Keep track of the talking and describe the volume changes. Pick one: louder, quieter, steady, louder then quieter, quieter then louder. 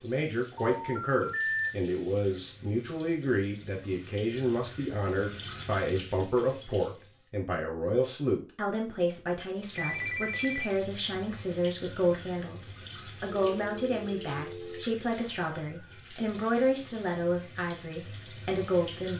steady.